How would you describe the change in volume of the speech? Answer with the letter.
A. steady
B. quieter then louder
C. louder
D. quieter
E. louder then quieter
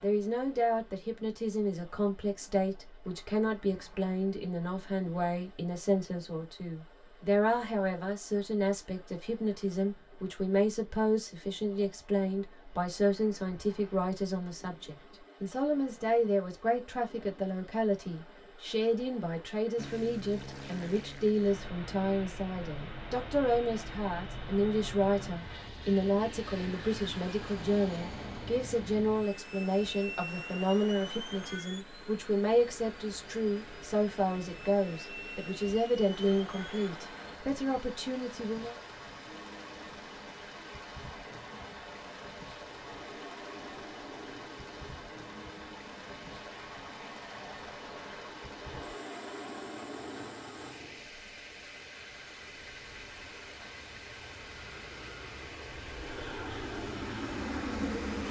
A.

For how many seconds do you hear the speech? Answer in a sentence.
You can hear the speech for 39 seconds altogether.